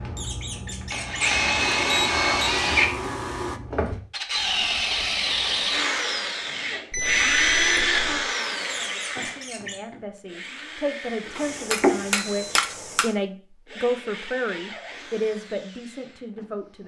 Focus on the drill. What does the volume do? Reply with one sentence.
The volume of the drill goes down.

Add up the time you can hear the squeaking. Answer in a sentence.
The squeaking can be heard for 2 seconds in total.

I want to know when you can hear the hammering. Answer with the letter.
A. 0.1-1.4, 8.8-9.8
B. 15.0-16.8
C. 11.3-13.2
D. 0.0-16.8
C.